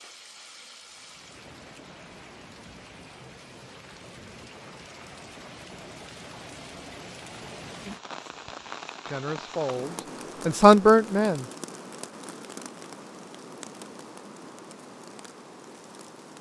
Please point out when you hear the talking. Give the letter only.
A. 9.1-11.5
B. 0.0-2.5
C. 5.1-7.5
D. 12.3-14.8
A.